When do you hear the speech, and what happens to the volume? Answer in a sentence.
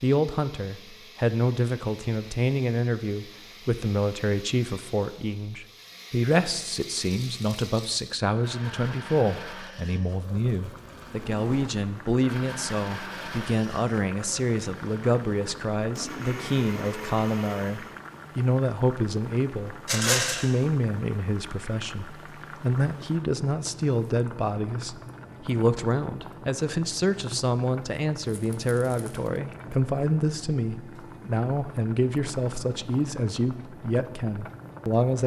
The speech can be heard from 0.0 to 35.2 s, at a steady volume.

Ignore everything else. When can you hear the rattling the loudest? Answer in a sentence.
The volume of the rattling peaks at 20 seconds.